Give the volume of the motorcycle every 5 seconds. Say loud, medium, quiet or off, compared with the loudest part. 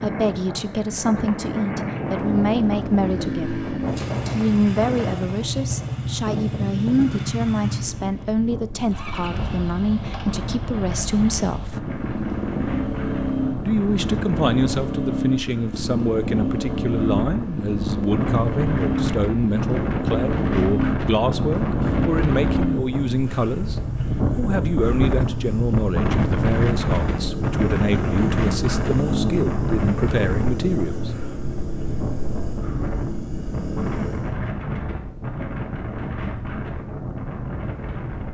loud, loud, loud, loud, loud, loud, medium, off.